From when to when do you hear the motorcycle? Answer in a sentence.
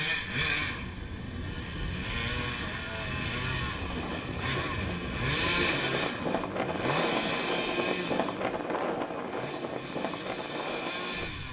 The motorcycle can be heard from 0.0 to 11.4 s.